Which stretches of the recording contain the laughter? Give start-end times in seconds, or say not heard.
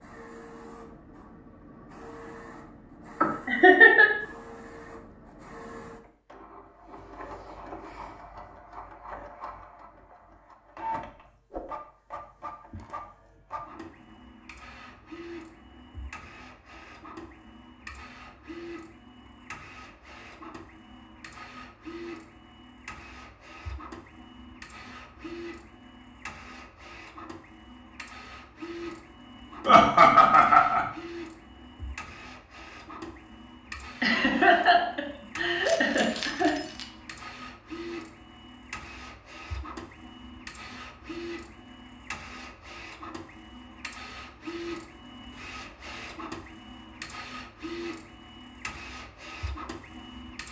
3.2-4.1, 29.6-30.9, 34.0-36.6.